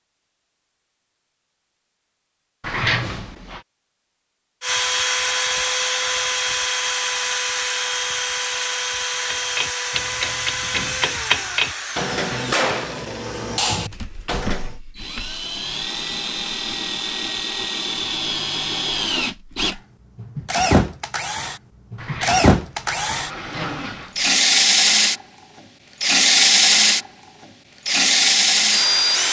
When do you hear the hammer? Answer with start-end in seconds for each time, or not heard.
9.2-14.8.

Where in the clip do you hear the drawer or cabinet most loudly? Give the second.
3 s.